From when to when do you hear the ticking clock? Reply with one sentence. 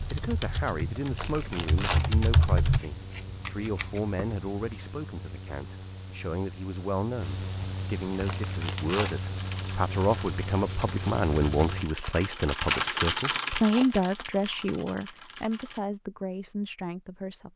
You can't hear the ticking clock here.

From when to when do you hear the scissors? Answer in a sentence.
The scissors can be heard from 2.8 to 4.9 s.